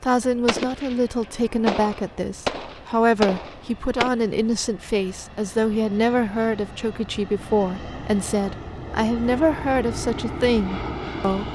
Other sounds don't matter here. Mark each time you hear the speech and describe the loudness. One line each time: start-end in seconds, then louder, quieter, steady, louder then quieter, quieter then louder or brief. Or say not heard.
0.0-11.5 steady.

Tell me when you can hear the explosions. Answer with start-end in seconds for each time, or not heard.
0.5-4.1.